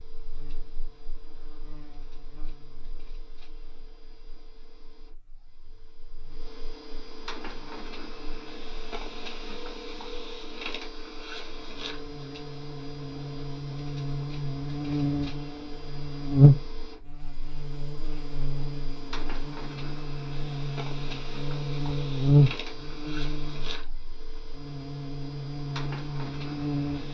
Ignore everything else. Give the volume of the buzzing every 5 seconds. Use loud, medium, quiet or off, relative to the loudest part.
quiet, quiet, medium, loud, loud, medium.